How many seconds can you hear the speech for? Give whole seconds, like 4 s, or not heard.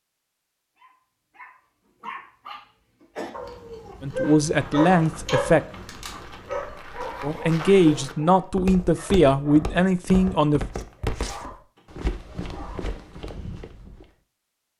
5 s.